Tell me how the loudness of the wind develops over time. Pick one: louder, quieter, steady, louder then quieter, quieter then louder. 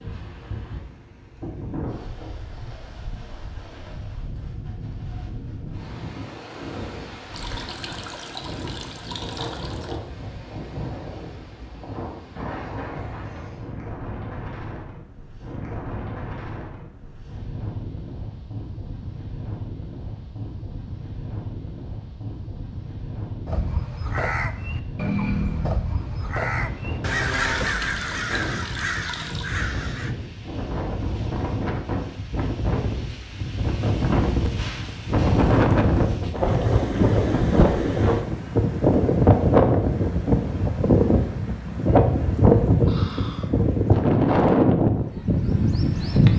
louder.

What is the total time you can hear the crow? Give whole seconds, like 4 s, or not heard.
7 s.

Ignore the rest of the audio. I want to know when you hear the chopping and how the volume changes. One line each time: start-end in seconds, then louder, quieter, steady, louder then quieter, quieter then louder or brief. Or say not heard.
not heard.